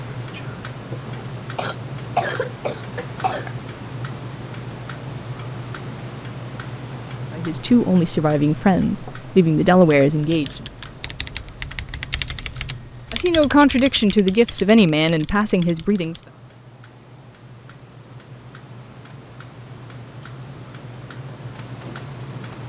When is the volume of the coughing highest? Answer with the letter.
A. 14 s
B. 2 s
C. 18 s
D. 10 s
B.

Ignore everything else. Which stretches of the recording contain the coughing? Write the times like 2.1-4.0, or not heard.
1.6-3.5.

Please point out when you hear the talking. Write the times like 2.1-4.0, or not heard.
7.3-10.6, 13.1-16.2.